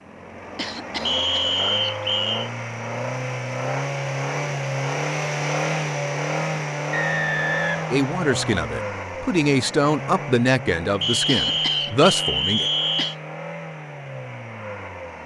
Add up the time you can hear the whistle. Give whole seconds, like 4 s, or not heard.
5 s.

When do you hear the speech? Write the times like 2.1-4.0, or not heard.
7.9-12.7.